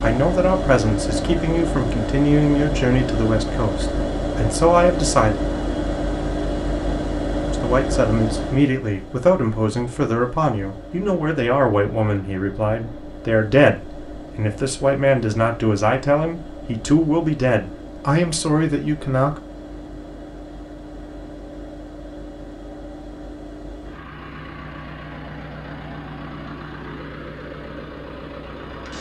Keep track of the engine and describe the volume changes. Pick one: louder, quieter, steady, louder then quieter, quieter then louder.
quieter.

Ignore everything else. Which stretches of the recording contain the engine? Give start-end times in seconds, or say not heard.
0.0-28.9.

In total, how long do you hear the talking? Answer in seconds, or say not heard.
17 s.